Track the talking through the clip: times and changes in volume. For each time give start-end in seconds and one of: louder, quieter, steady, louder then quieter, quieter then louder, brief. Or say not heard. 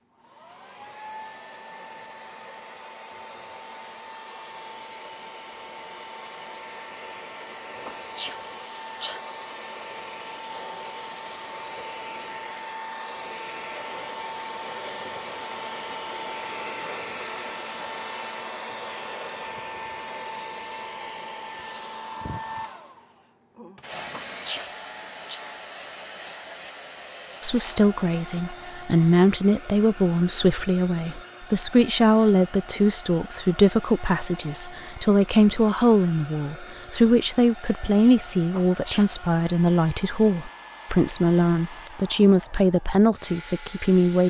27.4-44.2 steady.